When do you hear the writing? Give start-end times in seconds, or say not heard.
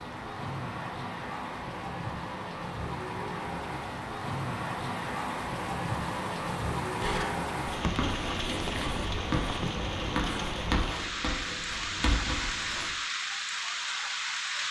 7.0-12.9.